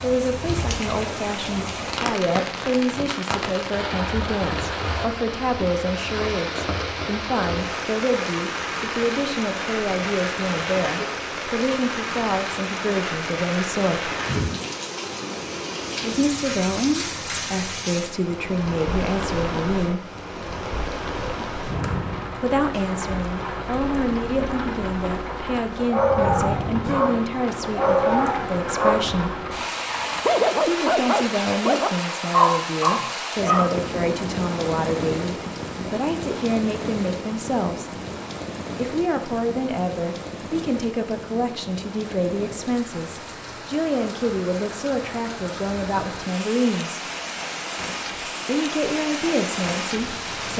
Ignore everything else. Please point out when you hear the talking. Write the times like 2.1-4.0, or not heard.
0.0-14.1, 16.0-20.1, 22.4-29.4, 30.6-37.9, 38.8-47.0, 48.5-50.5.